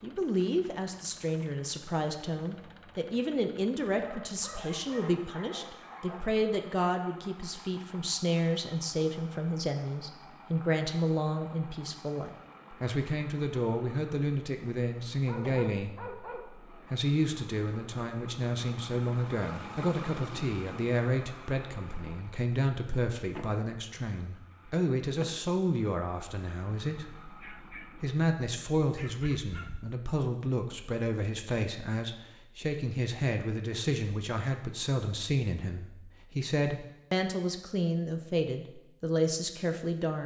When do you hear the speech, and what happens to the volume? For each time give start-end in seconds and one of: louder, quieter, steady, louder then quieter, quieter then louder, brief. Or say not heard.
0.0-40.2 steady.